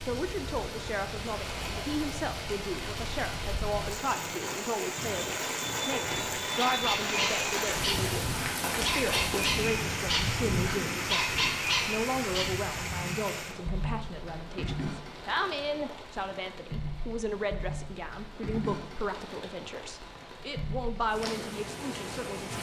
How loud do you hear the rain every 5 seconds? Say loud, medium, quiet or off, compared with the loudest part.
medium, loud, loud, medium, medium.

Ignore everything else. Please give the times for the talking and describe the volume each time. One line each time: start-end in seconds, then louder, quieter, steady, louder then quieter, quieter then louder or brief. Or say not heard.
0.0-22.5 steady.